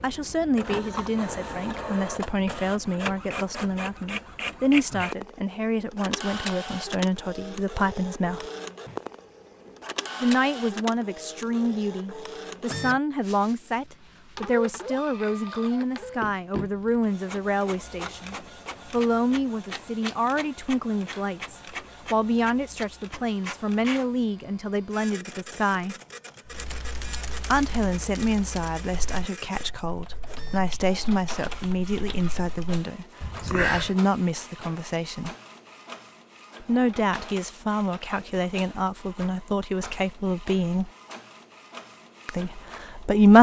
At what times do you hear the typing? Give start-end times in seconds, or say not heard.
26.4-34.0.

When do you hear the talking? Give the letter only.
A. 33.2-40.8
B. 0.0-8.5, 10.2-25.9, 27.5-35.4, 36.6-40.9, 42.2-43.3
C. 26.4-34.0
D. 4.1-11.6
B.